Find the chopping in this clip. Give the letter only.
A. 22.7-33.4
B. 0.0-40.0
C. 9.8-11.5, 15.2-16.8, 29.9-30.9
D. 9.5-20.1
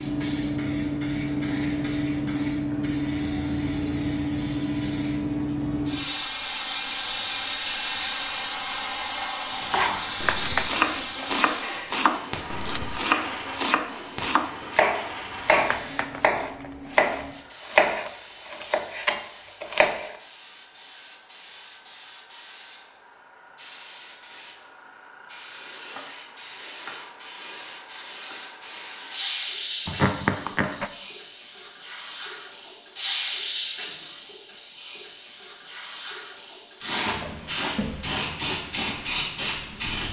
D.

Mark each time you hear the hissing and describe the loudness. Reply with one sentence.
You can hear the hissing from 0.0 to 40.0 s, getting quieter then louder.